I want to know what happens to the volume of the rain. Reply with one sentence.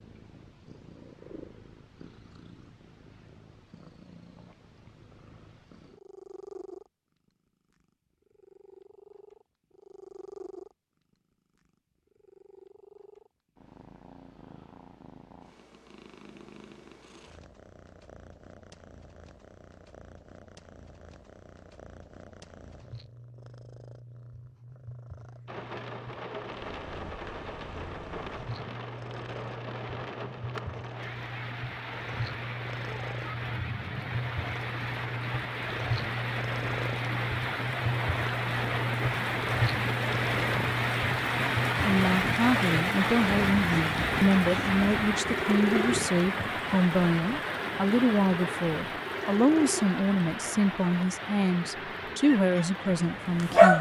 The loudness of the rain goes up, then down.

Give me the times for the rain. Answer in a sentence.
You can hear the rain from 25.4 to 53.7 s.